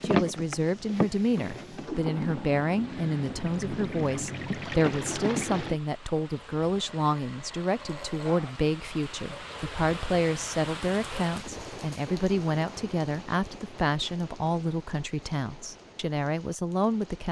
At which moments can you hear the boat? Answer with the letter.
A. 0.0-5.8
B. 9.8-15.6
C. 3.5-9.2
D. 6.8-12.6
A.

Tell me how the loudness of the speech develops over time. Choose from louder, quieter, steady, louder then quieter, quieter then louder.
steady.